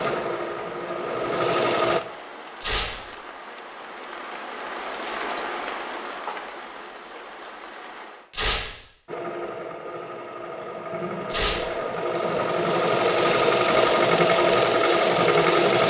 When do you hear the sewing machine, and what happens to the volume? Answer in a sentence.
You can hear the sewing machine briefly from 0.0 to 2.0 s; and from 9.1 to 15.8 s, getting louder.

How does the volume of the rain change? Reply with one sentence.
The loudness of the rain goes up, then down.